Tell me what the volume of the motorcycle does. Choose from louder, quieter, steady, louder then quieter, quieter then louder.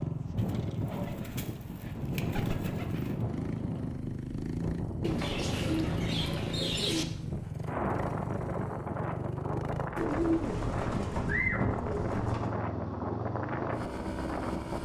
steady.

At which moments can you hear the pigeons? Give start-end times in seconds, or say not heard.
0.3-3.1, 5.0-7.0, 9.9-12.6.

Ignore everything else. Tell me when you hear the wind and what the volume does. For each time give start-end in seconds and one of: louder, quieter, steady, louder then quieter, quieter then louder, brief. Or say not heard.
0.0-14.8 steady.